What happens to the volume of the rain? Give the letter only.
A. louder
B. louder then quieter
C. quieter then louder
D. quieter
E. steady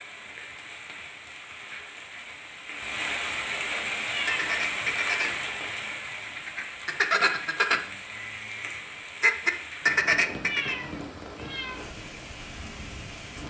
B.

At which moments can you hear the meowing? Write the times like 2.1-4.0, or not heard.
4.0-4.5, 10.4-11.8.